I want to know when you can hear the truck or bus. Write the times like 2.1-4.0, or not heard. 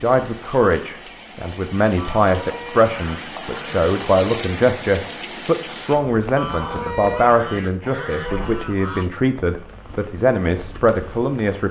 not heard.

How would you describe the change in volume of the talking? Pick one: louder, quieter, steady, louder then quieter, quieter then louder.
steady.